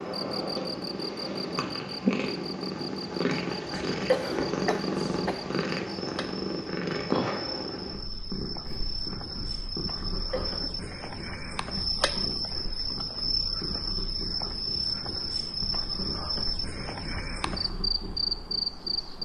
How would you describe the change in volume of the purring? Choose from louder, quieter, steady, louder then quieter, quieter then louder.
quieter.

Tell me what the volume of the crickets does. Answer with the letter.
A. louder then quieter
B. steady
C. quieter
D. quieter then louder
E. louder
E.